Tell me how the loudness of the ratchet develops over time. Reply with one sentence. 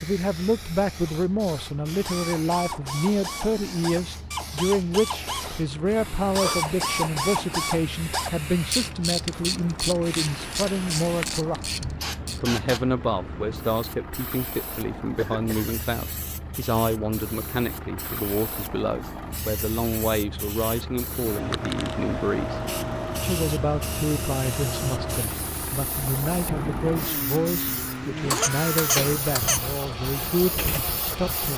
The loudness of the ratchet goes up, then down.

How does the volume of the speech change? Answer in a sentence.
The volume of the speech stays about the same.